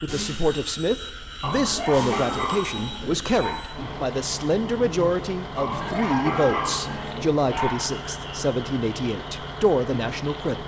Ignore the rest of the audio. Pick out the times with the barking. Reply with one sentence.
The barking can be heard from 1.4 to 3.6 s and from 5.5 to 7.9 s.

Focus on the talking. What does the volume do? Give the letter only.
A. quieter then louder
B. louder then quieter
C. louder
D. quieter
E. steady
E.